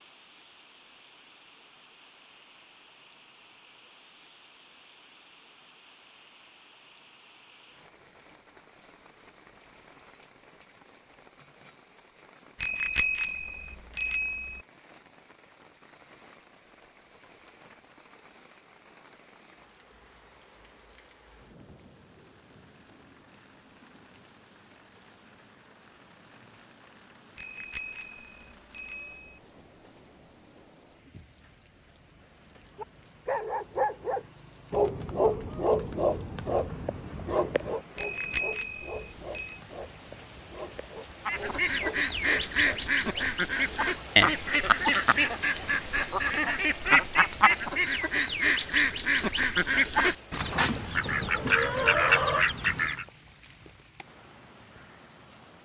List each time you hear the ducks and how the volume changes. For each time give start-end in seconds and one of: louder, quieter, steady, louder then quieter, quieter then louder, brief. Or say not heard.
41.2-53.0 steady.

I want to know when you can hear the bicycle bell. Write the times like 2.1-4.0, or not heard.
12.6-14.6, 27.4-29.4, 38.0-39.6.